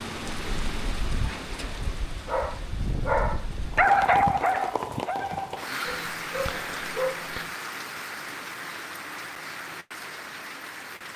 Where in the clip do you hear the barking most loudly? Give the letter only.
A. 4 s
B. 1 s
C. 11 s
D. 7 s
A.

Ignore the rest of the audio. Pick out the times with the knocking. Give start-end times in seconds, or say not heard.
not heard.